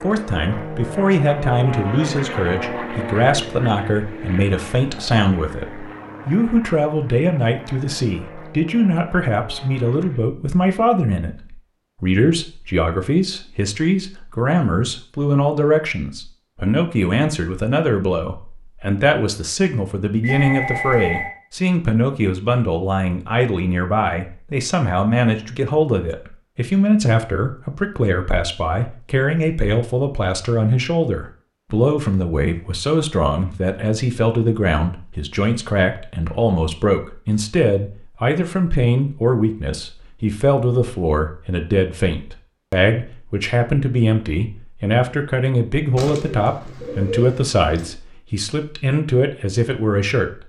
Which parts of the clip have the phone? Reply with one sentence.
You can hear the phone from 20.2 to 21.4 s.